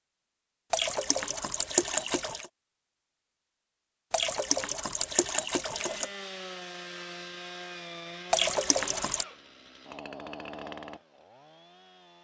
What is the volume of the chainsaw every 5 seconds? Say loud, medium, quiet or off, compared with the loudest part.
off, loud, loud.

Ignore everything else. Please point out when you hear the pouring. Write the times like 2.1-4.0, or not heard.
0.7-2.5, 4.1-6.1, 8.3-9.2.